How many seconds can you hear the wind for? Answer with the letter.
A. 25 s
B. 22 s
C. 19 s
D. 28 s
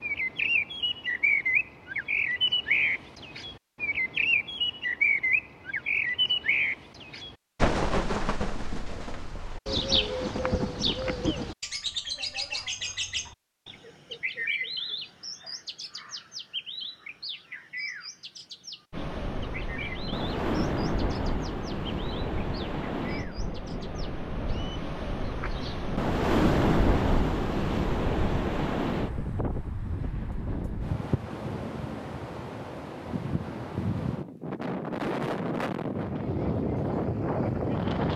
C.